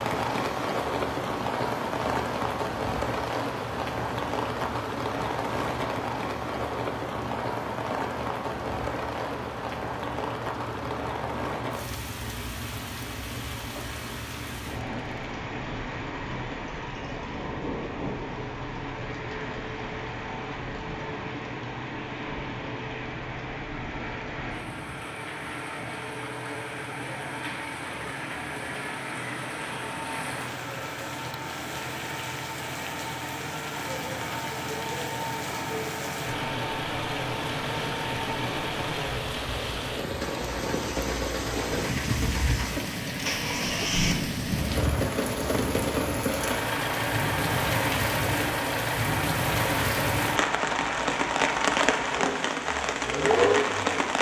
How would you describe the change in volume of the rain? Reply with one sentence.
The loudness of the rain goes down, then up.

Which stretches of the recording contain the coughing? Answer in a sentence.
You can't hear the coughing here.